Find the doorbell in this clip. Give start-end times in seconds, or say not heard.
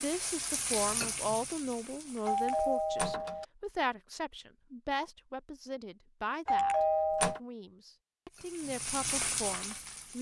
2.2-3.5, 6.5-7.4.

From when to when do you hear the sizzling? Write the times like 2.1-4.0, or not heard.
0.0-3.0, 8.3-10.1.